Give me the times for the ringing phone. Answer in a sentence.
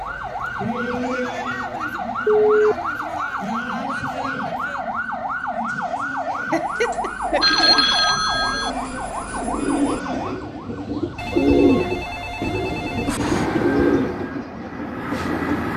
The ringing phone can be heard from 2.2 to 3.2 s, from 7.4 to 8.7 s and from 11.2 to 13.2 s.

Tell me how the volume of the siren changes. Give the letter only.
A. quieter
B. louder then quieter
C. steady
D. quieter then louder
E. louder
A.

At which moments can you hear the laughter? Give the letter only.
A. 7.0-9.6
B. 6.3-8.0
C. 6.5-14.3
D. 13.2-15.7
B.